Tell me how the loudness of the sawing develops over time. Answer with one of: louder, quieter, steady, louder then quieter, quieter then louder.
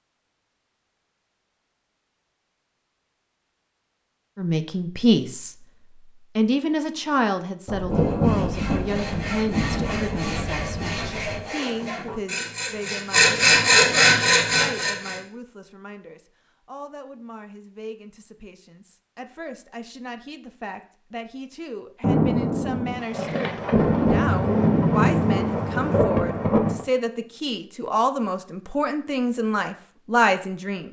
louder.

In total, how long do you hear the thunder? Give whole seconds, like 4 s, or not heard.
9 s.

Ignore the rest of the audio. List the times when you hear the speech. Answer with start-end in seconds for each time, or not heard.
4.3-30.8.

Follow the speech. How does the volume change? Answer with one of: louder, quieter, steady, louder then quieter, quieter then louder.
quieter then louder.